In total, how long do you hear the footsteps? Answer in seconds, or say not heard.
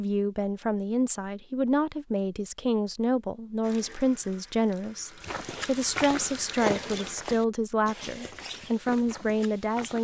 5 s.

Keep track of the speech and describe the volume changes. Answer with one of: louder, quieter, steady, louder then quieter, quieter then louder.
steady.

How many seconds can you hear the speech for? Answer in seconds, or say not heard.
10 s.